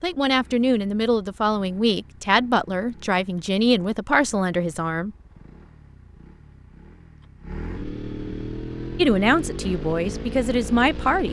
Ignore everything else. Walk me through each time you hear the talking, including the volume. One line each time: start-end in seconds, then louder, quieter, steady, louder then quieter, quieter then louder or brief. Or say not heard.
0.0-5.2 steady
8.9-11.2 brief.